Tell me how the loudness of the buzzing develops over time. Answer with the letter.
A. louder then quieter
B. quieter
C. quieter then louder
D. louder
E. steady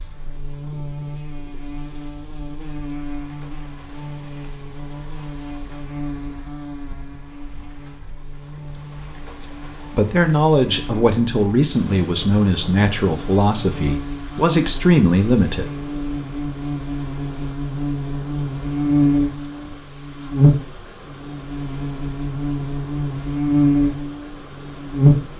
D.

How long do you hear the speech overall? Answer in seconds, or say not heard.
6 s.